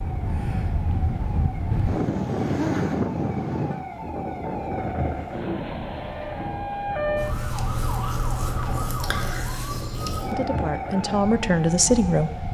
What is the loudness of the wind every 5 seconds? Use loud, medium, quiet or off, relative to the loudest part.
loud, medium, medium.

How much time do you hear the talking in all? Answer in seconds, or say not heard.
2 s.